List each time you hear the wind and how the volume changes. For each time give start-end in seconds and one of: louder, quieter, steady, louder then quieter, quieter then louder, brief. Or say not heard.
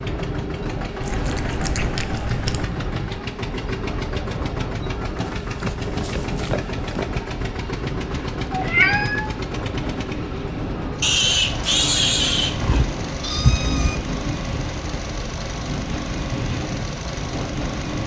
0.0-18.0 steady.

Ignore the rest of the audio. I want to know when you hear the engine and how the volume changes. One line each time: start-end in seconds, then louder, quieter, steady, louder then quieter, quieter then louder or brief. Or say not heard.
0.0-18.0 steady.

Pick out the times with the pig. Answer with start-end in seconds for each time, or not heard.
5.2-7.1, 11.0-12.8.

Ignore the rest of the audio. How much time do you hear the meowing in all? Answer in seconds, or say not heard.
4 s.